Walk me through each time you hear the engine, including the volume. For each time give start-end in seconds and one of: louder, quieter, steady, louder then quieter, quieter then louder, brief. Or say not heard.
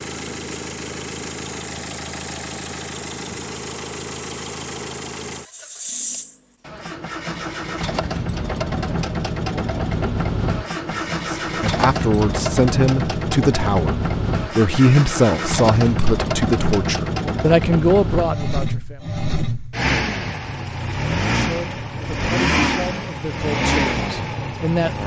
0.0-25.0 louder.